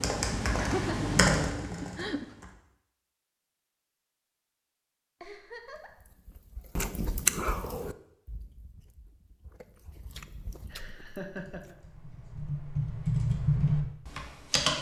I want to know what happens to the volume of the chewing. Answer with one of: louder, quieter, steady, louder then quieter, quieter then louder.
quieter then louder.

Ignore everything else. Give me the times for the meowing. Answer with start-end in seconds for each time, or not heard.
not heard.